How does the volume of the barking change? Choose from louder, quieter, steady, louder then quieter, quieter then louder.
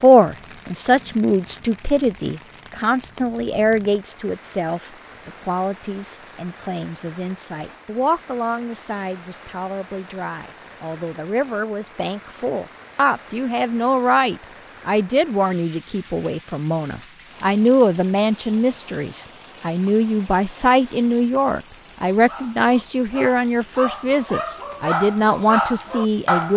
louder.